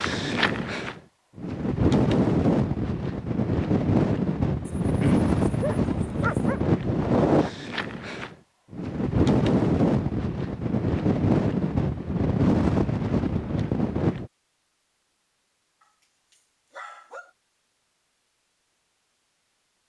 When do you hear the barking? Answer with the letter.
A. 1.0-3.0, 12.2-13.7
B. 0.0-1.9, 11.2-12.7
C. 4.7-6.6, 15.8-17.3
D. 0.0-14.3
C.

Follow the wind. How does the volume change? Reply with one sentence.
The volume of the wind stays about the same.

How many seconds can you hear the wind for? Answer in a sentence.
The wind can be heard for 14 seconds in total.